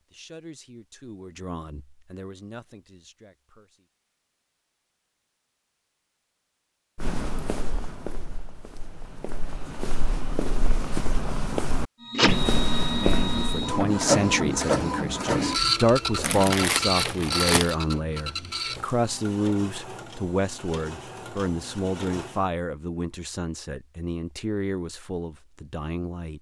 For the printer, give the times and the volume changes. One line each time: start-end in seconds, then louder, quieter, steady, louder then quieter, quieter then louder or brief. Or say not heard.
12.0-22.5 quieter.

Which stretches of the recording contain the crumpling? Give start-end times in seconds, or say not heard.
16.2-17.8.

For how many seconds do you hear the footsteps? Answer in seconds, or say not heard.
7 s.